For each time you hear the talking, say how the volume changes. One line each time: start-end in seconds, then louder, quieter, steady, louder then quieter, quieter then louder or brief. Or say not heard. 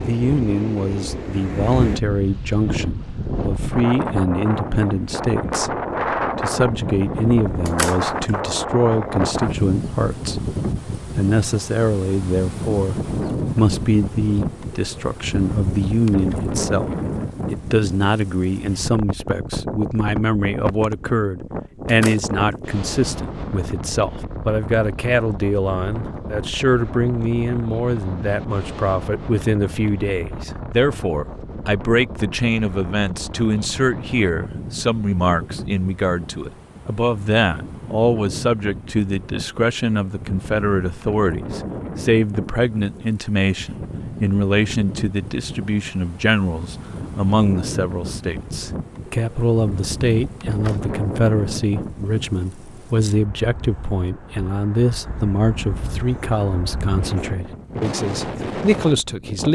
0.1-16.9 steady
17.5-59.5 steady.